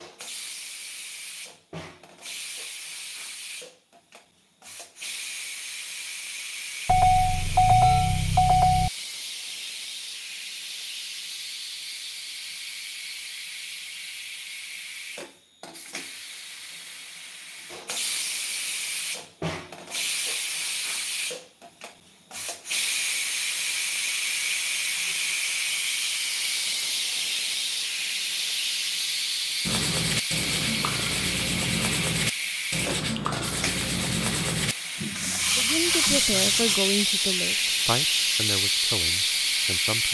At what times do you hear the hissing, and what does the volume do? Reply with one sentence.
The hissing can be heard from 0.0 to 40.0 s, getting louder.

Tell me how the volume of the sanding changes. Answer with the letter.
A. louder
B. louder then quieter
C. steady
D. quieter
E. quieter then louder
C.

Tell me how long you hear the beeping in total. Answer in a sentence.
You can hear the beeping for 2 seconds altogether.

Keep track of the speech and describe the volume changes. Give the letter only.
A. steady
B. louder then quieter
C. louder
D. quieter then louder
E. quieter
E.